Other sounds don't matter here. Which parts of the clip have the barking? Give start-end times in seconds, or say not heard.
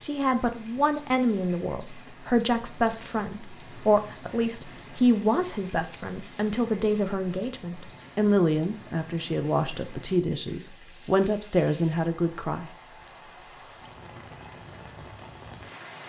not heard.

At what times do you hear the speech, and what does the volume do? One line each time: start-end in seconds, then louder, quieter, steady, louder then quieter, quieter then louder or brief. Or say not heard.
0.0-12.7 steady.